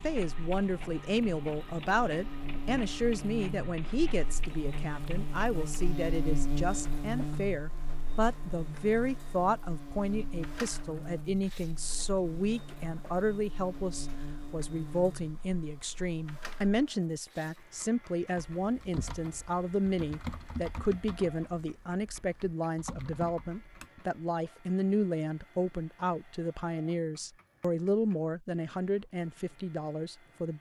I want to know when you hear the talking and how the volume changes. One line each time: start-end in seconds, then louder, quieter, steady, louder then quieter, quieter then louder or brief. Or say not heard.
0.0-30.5 steady.